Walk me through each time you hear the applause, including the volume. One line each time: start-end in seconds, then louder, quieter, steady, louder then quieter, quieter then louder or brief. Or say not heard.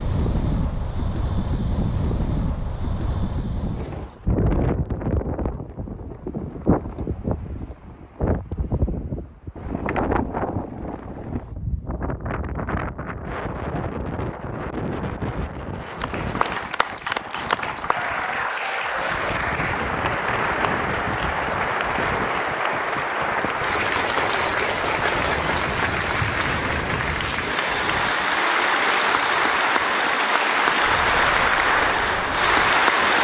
15.8-33.1 louder.